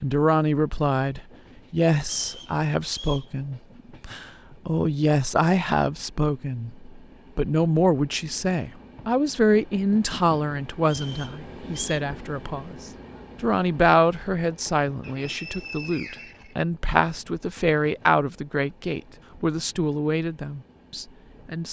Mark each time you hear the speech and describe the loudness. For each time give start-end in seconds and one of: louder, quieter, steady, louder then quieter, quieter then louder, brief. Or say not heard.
0.0-21.6 steady.